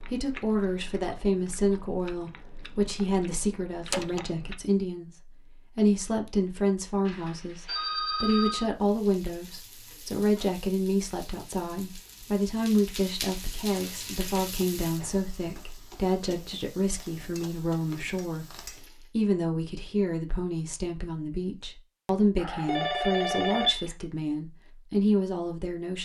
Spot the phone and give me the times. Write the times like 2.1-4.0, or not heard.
7.0-8.7, 22.4-23.9.